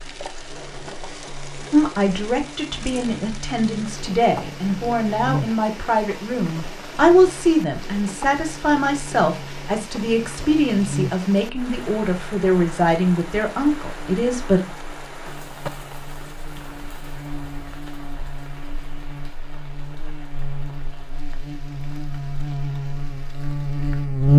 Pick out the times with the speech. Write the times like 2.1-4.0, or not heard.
1.7-14.7.